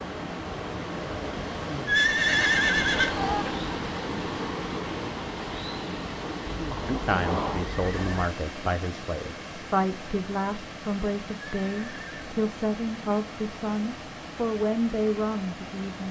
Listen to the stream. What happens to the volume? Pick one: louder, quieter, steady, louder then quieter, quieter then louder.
quieter.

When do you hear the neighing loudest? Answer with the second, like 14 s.
2 s.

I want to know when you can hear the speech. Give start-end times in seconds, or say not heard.
6.8-16.0.